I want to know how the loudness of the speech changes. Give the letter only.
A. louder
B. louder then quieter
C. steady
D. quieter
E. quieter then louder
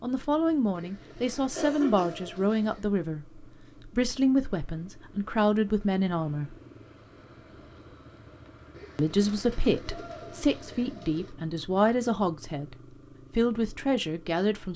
C.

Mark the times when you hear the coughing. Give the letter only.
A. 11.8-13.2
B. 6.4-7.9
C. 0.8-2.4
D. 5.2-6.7
C.